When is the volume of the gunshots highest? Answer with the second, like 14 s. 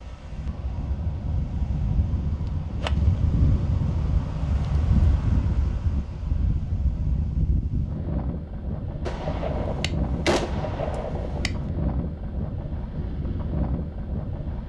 10 s.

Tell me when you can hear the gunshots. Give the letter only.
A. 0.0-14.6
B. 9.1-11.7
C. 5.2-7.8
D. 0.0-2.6
B.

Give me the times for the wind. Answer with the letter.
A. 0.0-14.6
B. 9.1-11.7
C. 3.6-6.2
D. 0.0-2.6
A.